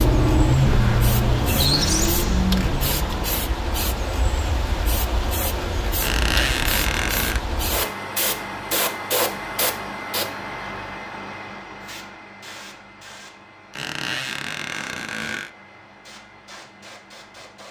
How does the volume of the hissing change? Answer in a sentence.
The loudness of the hissing goes down.